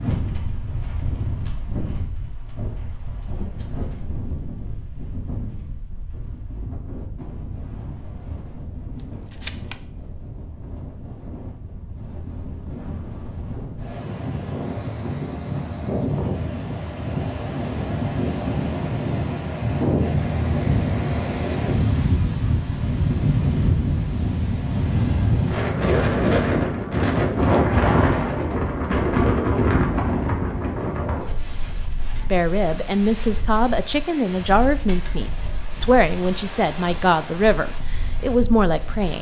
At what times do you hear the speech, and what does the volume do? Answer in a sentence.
You can hear the speech from 32.1 to 39.1 s, at a steady volume.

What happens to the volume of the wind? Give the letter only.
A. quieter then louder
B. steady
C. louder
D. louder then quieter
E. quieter
D.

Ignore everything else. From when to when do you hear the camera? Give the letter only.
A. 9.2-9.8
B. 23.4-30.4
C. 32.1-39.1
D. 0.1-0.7
A.